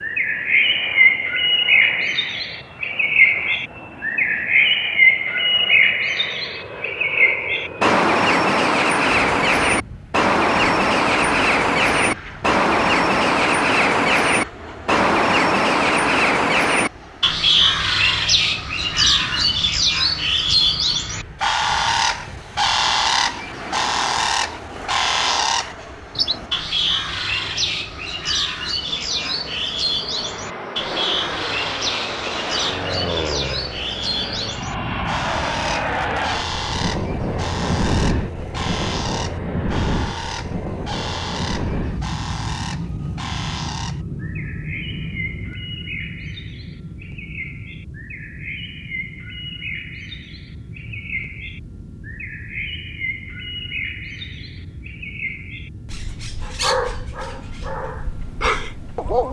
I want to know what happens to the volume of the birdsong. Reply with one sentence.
The loudness of the birdsong goes down.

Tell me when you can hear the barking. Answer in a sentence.
You can hear the barking from 56.4 to 59.2 s.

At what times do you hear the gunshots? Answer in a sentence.
You can't hear the gunshots here.